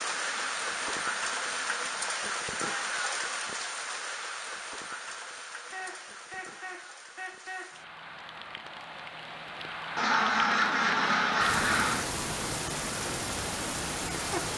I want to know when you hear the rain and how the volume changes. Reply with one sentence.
You can hear the rain from 0.0 to 14.5 s, getting quieter then louder.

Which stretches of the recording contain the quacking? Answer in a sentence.
The quacking can be heard from 0.0 to 2.0 s, from 5.7 to 7.7 s and from 9.9 to 12.1 s.